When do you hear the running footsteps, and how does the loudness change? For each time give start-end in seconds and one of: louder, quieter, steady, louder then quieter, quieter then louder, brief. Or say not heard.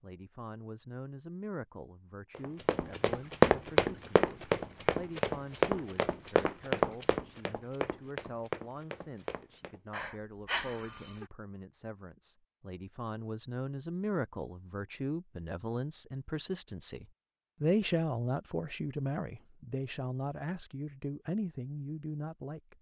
2.4-9.8 quieter.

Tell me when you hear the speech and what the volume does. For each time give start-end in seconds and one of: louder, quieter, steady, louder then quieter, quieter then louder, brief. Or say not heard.
0.0-22.7 louder.